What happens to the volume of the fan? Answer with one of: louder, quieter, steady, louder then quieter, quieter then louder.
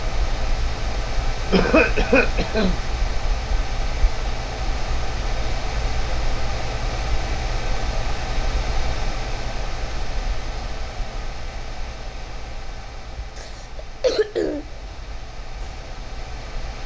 quieter.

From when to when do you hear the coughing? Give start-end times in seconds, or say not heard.
1.5-2.8, 13.3-14.7.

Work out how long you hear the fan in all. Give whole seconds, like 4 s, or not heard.
17 s.